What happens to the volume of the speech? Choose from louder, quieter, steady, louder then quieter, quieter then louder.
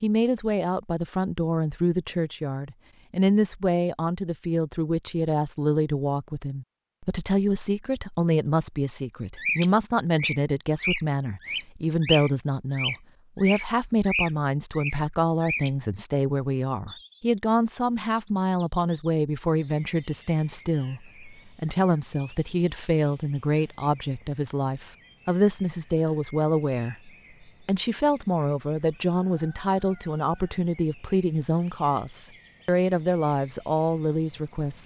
steady.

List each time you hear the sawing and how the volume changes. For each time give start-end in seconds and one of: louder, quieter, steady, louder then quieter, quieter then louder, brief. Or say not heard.
not heard.